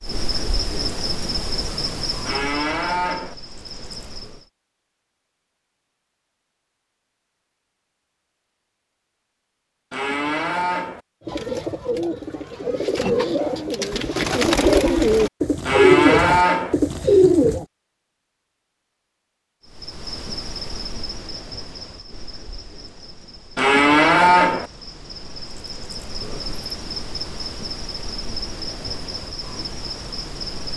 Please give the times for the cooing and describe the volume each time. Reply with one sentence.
The cooing can be heard from 11.2 to 17.6 s, getting louder.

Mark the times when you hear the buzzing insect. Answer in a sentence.
The buzzing insect can be heard from 0.0 to 4.5 s and from 19.6 to 30.7 s.